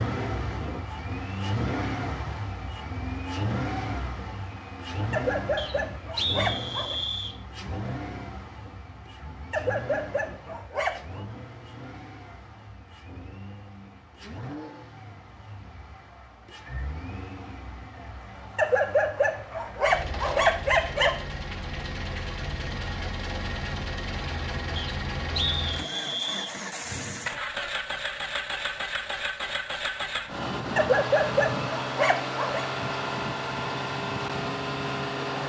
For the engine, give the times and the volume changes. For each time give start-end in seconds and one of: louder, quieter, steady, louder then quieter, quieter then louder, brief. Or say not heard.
0.0-35.4 quieter then louder.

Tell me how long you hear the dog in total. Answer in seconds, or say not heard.
8 s.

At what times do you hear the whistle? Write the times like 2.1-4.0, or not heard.
5.5-7.3, 24.8-26.6.